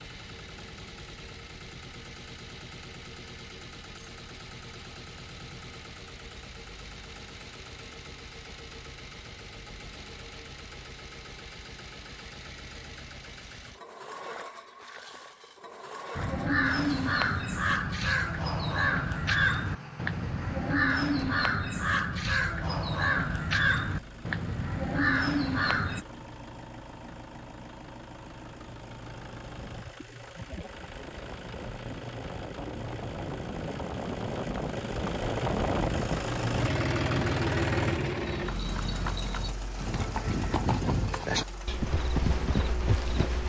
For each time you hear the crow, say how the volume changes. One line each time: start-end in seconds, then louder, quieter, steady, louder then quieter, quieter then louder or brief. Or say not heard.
16.1-26.1 steady.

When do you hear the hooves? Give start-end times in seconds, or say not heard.
38.2-43.4.